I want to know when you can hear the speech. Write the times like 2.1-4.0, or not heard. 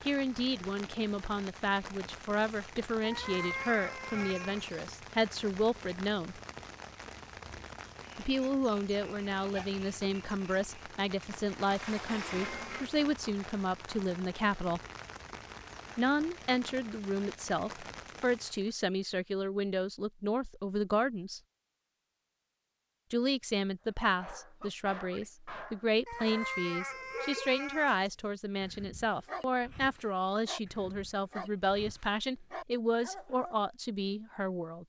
0.0-6.4, 8.2-14.8, 15.9-21.4, 23.1-34.8.